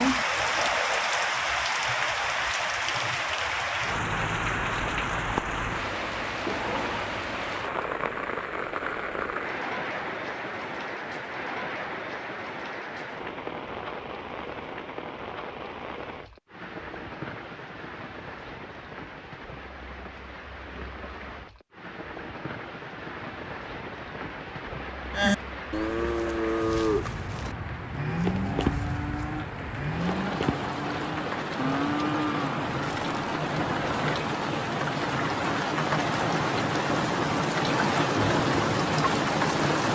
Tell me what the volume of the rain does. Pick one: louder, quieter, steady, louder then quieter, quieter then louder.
quieter then louder.